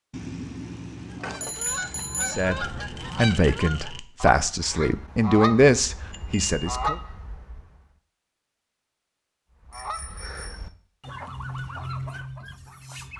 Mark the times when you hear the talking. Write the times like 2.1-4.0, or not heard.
2.2-7.0.